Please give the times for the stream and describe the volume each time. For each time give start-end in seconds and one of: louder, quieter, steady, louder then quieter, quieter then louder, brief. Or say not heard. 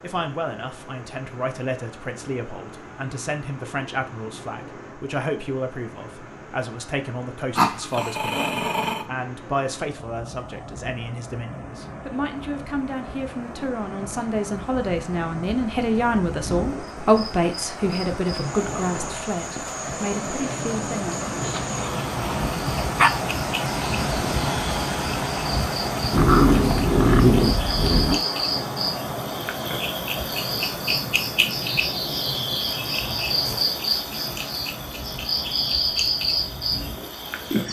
0.0-37.6 louder then quieter.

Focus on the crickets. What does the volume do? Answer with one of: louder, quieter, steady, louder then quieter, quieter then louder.
louder.